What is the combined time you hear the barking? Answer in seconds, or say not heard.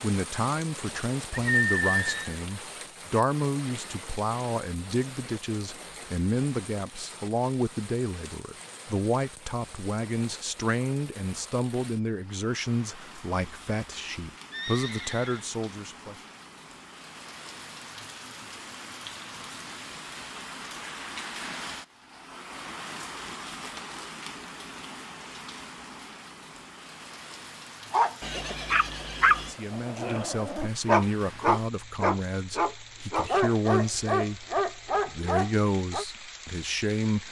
8 s.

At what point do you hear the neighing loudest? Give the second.
2 s.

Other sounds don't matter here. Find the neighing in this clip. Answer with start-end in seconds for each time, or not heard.
1.3-2.4, 14.5-15.5, 28.2-29.6.